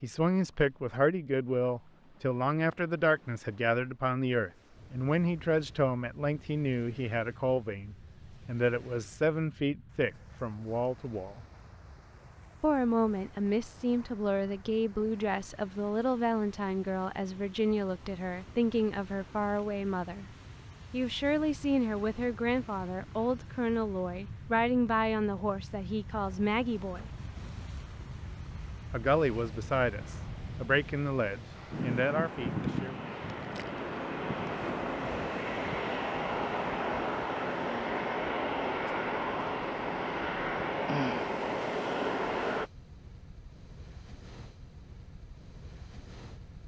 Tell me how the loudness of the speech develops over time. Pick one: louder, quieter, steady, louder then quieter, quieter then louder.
steady.